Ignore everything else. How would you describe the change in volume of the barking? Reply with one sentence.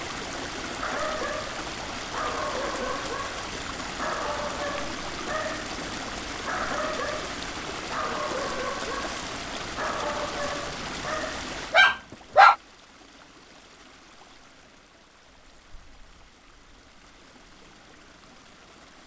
The volume of the barking goes up.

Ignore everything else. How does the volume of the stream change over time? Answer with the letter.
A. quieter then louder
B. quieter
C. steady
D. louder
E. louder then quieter
B.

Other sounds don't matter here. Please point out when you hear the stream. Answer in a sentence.
You can hear the stream from 0.0 to 19.0 s.